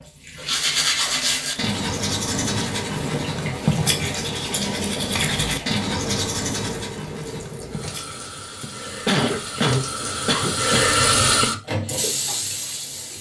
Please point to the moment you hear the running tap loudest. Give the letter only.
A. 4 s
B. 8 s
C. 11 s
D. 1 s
C.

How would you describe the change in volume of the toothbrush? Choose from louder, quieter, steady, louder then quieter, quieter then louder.
quieter.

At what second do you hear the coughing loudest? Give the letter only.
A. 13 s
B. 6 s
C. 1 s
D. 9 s
D.